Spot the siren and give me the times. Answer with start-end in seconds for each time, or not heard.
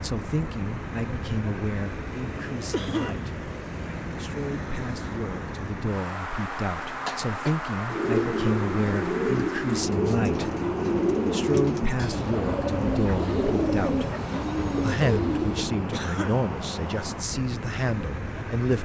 not heard.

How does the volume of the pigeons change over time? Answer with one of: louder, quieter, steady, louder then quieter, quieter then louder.
steady.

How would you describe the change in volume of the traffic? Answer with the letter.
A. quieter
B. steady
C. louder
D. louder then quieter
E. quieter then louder
B.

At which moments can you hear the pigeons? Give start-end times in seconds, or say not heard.
7.9-15.9.